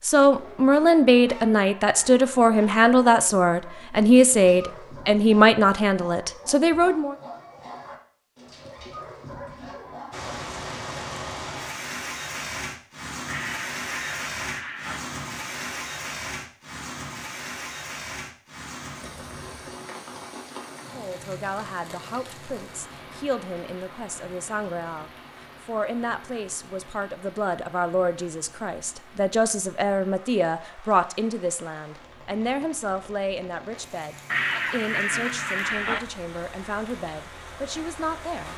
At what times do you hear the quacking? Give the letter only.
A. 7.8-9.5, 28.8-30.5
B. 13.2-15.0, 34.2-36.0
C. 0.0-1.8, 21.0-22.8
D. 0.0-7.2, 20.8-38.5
B.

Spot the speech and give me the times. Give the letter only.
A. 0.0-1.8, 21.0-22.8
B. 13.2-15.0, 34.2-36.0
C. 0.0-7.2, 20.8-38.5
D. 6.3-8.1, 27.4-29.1
C.